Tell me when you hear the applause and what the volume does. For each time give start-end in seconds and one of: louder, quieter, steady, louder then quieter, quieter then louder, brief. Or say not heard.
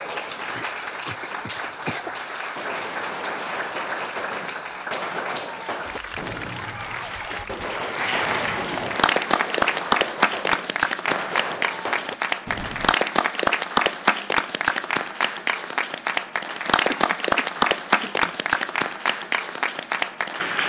0.0-20.6 louder.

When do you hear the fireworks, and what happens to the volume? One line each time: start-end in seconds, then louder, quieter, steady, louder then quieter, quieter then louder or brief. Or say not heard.
2.5-12.9 steady.